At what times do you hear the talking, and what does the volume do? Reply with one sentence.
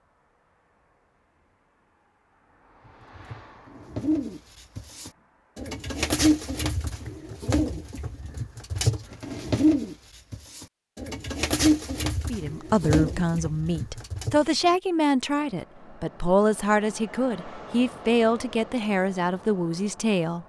The talking can be heard from 12.2 to 20.4 s, at a steady volume.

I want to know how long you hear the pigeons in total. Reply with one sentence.
You can hear the pigeons for 12 seconds altogether.